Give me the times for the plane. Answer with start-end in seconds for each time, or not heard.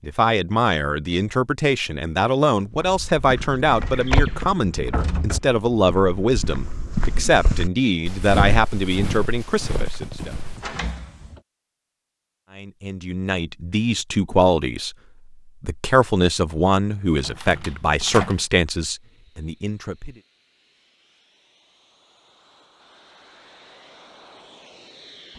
19.1-25.3.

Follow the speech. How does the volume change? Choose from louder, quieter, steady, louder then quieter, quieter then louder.
steady.